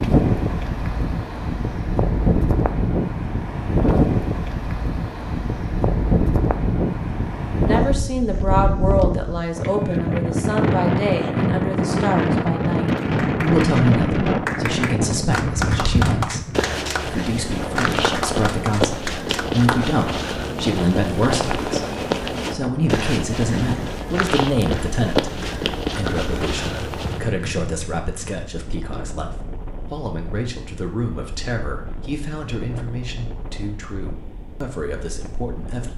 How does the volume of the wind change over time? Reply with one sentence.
The loudness of the wind goes down.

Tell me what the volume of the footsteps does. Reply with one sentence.
The loudness of the footsteps stays about the same.